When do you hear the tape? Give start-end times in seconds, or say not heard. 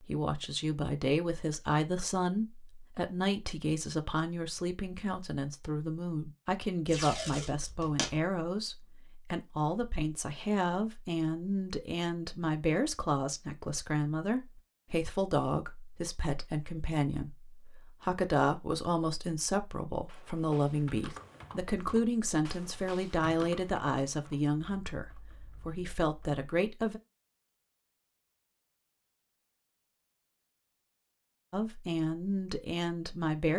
6.8-8.2.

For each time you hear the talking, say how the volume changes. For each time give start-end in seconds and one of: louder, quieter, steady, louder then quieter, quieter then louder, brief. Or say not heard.
0.0-27.0 steady
31.5-33.5 brief.